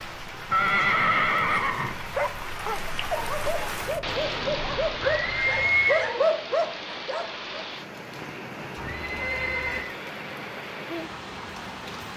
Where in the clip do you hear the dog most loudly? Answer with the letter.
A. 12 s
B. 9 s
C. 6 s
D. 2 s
C.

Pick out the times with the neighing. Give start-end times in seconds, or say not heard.
0.5-2.4, 5.0-6.2, 8.8-9.9.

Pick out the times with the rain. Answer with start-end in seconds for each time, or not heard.
0.0-12.1.